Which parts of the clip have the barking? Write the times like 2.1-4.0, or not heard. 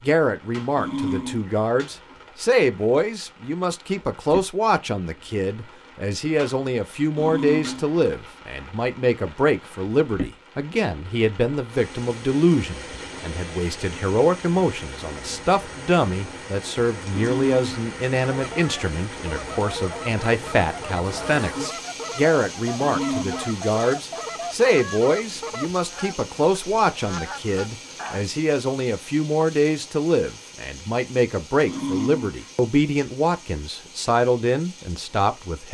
0.8-1.6, 7.2-8.0, 17.1-17.8, 22.8-23.6, 31.6-32.5.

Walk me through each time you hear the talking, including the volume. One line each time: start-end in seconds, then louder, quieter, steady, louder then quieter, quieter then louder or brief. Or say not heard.
0.0-35.6 steady.